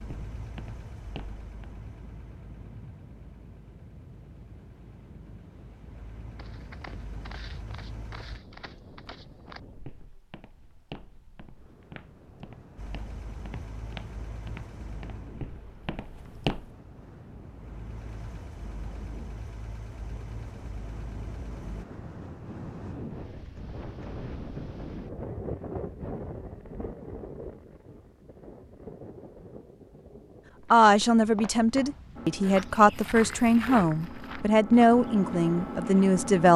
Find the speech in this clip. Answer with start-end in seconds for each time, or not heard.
30.7-36.5.